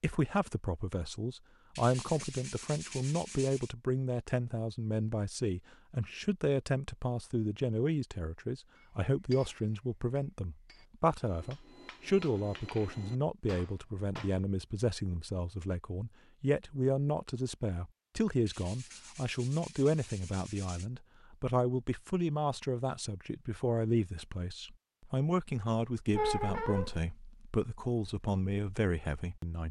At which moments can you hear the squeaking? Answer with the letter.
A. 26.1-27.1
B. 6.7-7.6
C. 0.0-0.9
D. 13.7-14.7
A.